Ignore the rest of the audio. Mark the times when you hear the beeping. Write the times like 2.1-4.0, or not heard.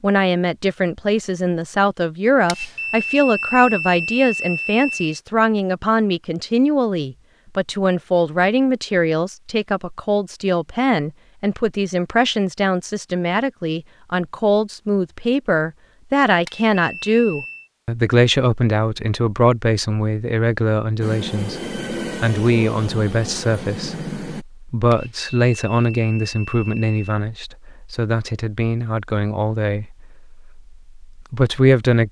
2.5-5.2, 16.4-17.7, 24.9-27.0.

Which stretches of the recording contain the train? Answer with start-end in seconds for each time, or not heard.
21.0-24.4.